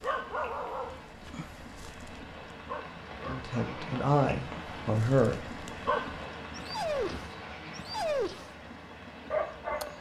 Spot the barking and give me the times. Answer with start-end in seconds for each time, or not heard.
0.0-8.6, 9.3-9.9.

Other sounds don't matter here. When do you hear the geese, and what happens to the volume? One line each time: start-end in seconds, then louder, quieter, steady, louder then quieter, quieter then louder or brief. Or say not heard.
not heard.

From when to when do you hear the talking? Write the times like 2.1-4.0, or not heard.
3.2-5.4.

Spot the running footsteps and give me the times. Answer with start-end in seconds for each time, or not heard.
not heard.